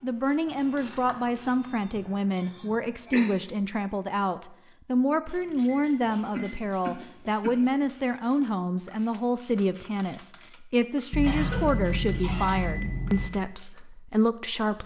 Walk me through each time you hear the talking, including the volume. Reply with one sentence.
You can hear the talking from 0.0 to 14.8 s, at a steady volume.